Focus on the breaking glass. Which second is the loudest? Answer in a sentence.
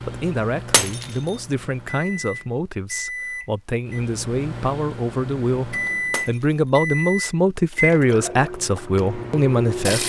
The loudest moment of the breaking glass is at 1 second.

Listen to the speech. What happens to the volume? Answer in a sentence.
The volume of the speech goes up.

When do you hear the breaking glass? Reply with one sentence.
The breaking glass can be heard from 0.7 to 1.4 s and from 6.1 to 6.7 s.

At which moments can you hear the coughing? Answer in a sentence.
The coughing can't be heard in this clip.